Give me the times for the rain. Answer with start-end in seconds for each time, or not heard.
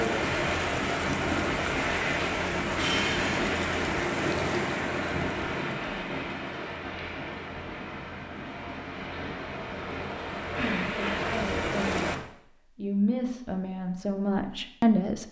0.0-12.2.